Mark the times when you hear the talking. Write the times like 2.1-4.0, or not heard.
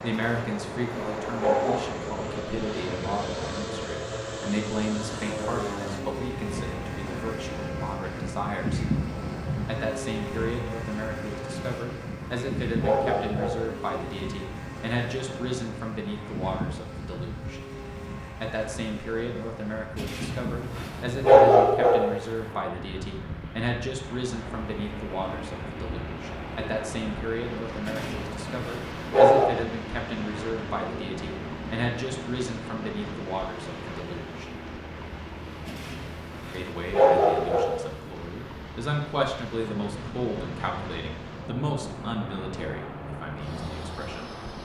0.0-8.8, 9.7-17.6, 18.4-34.5, 36.5-44.3.